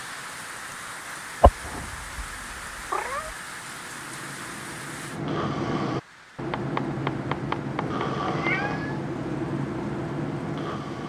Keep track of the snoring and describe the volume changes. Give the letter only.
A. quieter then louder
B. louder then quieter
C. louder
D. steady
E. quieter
C.